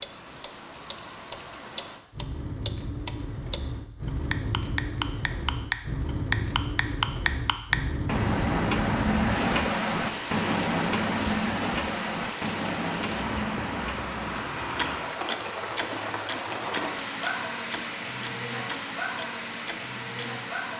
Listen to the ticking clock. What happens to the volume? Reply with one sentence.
The volume of the ticking clock goes down.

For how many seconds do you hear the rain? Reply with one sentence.
You can hear the rain for 21 seconds altogether.